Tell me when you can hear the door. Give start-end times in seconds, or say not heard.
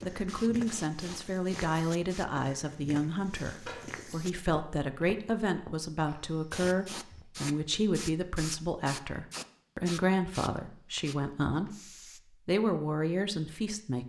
3.6-4.2.